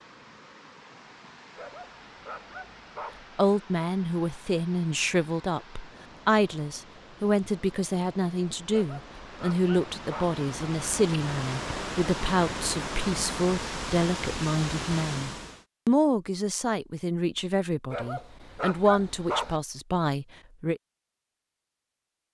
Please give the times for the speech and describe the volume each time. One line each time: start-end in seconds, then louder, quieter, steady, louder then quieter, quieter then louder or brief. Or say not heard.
3.4-20.8 steady.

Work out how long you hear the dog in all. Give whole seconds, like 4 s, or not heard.
5 s.